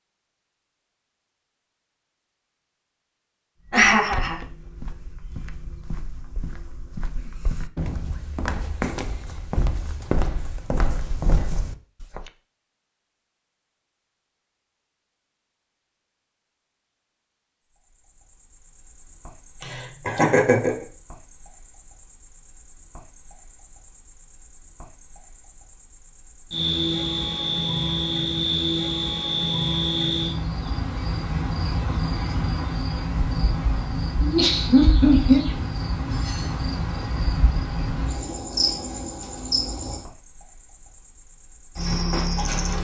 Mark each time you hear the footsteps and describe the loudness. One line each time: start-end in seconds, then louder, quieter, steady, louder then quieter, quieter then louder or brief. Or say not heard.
3.6-12.3 louder.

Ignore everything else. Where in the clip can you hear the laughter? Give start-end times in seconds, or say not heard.
3.7-4.3, 19.6-20.8, 34.2-35.4.